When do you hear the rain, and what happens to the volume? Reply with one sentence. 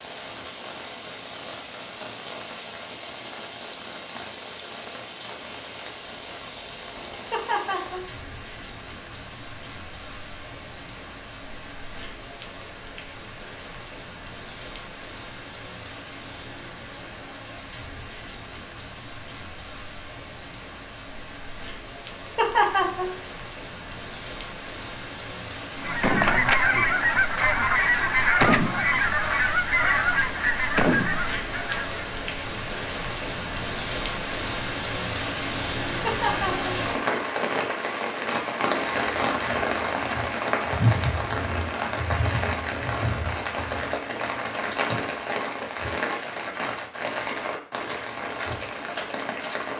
You can hear the rain from 0.0 to 49.7 s, getting louder.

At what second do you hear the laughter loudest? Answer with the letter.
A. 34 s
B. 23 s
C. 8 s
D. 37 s
B.